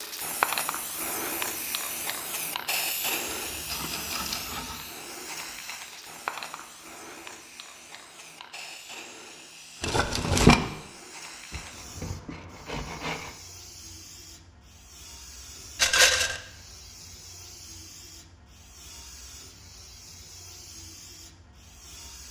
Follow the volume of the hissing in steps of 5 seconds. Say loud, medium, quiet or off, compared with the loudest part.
loud, medium, quiet, quiet, quiet.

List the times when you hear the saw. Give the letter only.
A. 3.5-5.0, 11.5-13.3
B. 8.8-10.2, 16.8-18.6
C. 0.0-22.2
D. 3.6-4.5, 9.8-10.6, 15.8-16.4
A.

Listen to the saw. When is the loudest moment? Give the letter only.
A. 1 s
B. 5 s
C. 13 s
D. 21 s
C.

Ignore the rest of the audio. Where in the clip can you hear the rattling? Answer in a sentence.
You can hear the rattling from 3.6 to 4.5 s, from 9.8 to 10.6 s and from 15.8 to 16.4 s.